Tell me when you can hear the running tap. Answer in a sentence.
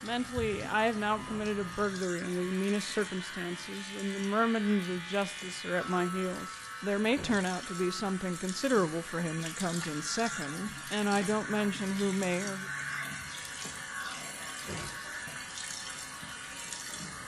The running tap can be heard from 0.0 to 17.2 s.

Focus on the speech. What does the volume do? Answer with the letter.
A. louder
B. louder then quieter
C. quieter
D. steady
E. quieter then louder
D.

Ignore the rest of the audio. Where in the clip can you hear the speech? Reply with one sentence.
You can hear the speech from 0.0 to 12.7 s.